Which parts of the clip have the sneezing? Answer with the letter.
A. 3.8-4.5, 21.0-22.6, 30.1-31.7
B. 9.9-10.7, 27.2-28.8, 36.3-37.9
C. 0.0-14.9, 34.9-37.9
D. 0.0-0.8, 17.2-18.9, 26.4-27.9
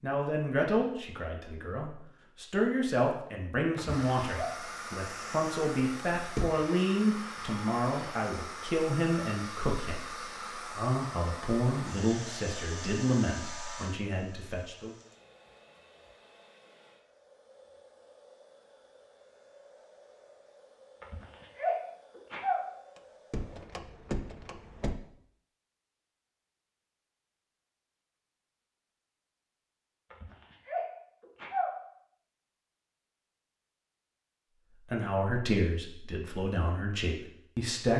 A.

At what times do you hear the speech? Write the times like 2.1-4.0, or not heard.
0.0-14.9, 34.9-37.9.